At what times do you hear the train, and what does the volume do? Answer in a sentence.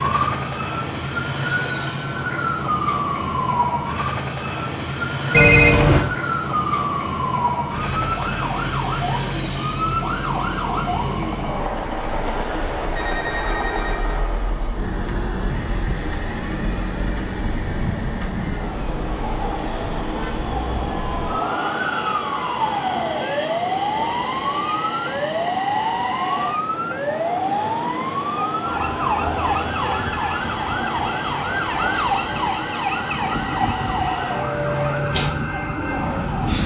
You can hear the train from 0.0 to 36.6 s, at a steady volume.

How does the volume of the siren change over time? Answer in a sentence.
The volume of the siren goes down, then up.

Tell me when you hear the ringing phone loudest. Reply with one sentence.
The volume of the ringing phone peaks at 6 seconds.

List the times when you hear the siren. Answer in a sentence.
You can hear the siren from 0.0 to 36.6 s.